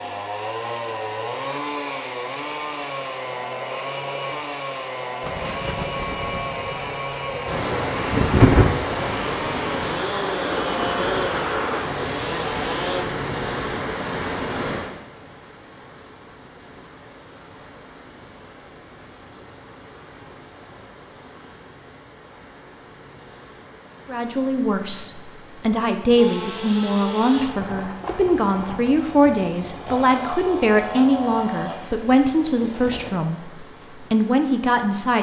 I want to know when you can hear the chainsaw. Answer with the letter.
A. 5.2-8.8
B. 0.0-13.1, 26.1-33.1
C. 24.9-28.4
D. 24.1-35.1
B.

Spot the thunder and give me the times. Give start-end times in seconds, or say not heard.
5.2-8.8.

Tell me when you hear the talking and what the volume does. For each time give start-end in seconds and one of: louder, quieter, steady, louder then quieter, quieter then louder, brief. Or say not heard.
24.1-35.1 steady.